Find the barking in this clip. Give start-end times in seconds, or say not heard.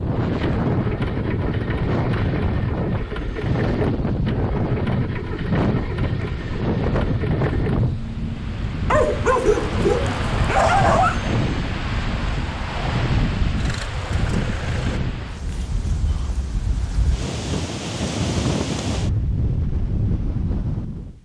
8.9-11.3.